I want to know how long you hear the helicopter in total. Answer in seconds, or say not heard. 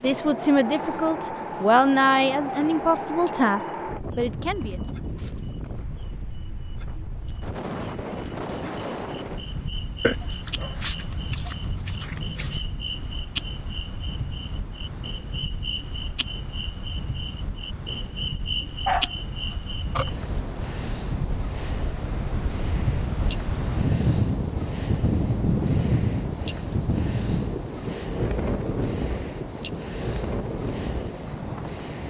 not heard.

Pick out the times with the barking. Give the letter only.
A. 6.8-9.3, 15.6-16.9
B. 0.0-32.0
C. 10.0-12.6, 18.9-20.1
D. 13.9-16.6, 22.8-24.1
C.